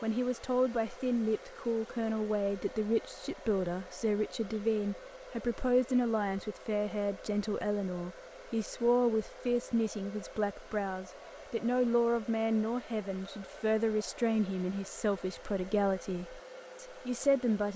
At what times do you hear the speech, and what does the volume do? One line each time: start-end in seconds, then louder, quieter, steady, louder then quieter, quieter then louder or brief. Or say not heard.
0.0-17.7 steady.